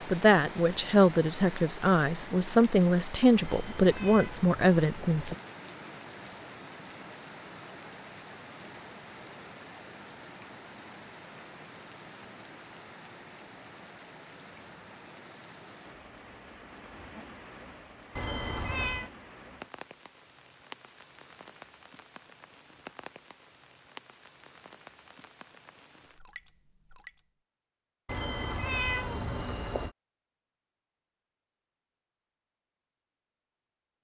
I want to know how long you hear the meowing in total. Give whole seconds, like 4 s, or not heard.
5 s.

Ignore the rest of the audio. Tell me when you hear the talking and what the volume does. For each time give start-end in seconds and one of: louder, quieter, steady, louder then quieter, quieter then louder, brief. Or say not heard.
0.1-5.3 steady.